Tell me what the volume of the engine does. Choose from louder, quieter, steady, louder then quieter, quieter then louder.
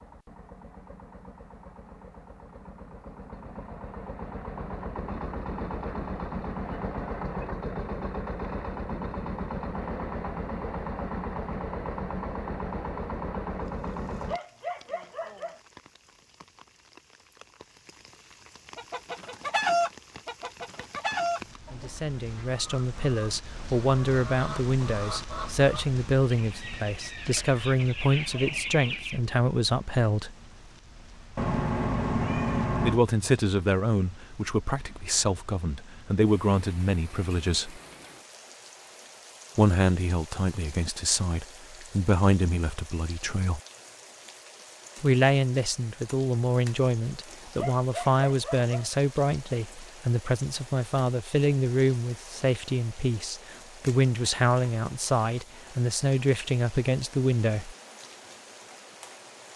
louder.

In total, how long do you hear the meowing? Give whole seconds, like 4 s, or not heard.
2 s.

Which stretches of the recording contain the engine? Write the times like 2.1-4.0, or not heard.
0.0-14.4.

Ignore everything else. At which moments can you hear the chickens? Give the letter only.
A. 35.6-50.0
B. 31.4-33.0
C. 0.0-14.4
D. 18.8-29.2
D.